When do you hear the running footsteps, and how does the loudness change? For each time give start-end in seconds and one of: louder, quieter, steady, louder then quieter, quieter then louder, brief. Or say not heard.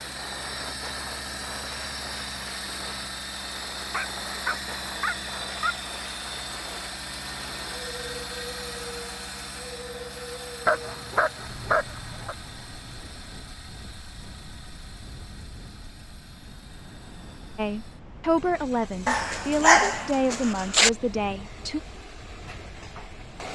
not heard.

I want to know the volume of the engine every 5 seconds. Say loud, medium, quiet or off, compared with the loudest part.
loud, loud, medium, quiet, medium.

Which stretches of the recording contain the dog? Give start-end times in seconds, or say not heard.
3.9-5.8, 10.7-12.3, 19.1-20.9.